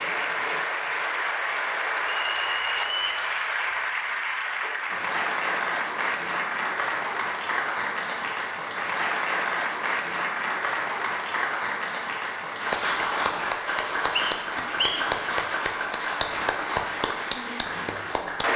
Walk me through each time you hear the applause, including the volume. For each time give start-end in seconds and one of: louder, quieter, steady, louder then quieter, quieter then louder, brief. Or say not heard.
0.0-18.5 steady.